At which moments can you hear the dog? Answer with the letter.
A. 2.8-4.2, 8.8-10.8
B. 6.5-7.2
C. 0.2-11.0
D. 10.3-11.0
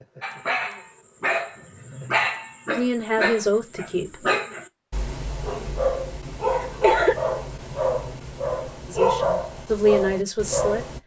C.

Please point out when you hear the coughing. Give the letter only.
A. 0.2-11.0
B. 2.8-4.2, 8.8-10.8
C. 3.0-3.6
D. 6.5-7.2
D.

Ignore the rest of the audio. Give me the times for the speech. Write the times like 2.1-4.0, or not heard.
2.8-4.2, 8.8-10.8.